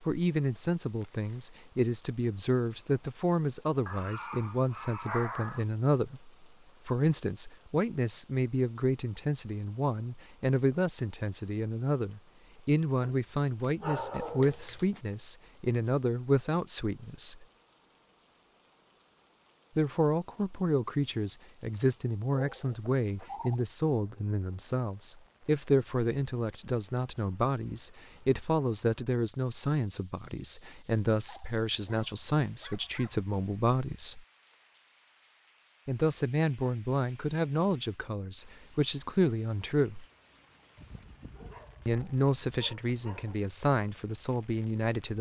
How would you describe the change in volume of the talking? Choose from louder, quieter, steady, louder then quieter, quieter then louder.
steady.